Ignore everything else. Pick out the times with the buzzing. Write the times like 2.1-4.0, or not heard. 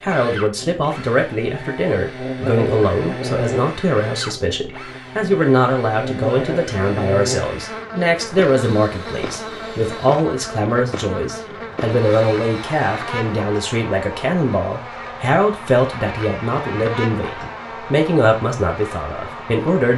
0.0-19.9.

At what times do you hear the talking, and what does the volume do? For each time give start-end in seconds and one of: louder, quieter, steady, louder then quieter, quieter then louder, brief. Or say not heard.
0.0-19.9 steady.